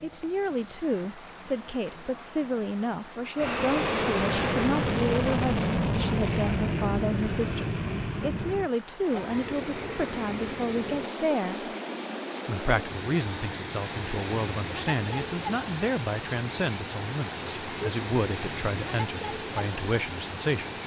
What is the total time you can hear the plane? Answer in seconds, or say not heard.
5 s.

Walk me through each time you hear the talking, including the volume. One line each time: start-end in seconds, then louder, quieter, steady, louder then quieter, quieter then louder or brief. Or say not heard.
0.0-11.7 steady
12.4-20.7 steady.